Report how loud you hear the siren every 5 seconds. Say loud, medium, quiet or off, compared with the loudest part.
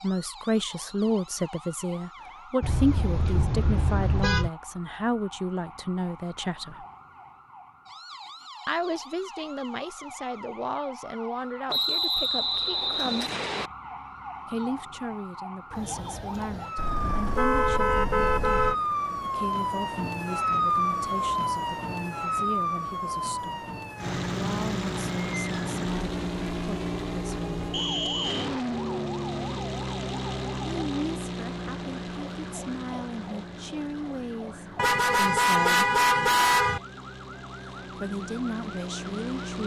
quiet, quiet, quiet, loud, loud, medium, quiet, quiet.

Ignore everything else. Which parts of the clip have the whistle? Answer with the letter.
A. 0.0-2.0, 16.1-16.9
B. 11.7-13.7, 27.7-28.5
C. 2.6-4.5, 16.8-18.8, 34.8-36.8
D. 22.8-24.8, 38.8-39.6
B.